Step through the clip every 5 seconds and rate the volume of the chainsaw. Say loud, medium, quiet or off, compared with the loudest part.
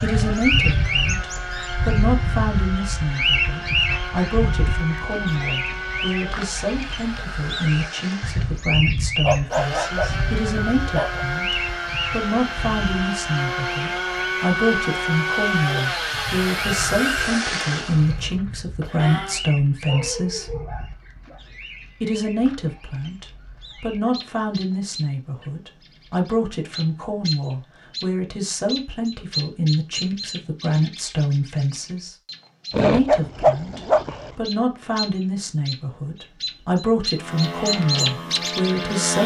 medium, medium, loud, loud, off, off, off, loud.